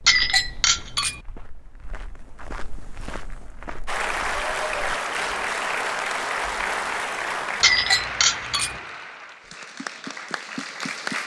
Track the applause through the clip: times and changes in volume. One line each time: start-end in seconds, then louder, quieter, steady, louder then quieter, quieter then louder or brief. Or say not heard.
3.9-11.2 quieter.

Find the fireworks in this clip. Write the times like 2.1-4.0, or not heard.
not heard.